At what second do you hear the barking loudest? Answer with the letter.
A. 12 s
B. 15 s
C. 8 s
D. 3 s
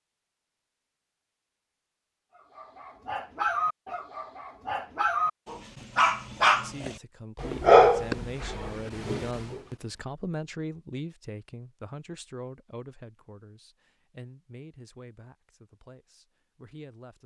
C.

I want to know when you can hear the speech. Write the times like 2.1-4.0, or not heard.
6.6-17.2.